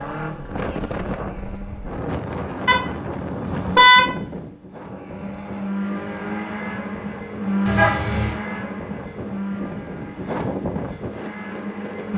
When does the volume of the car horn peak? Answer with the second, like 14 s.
4 s.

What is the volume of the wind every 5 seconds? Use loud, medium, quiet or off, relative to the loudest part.
loud, medium, loud.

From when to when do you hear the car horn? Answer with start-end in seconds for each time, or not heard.
2.6-4.1, 7.7-8.3.